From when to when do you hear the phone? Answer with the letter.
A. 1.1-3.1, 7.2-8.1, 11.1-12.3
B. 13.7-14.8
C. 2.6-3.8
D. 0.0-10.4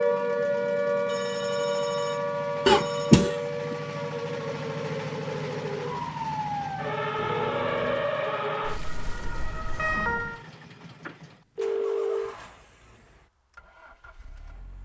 A.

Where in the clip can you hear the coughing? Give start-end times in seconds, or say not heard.
2.6-3.8.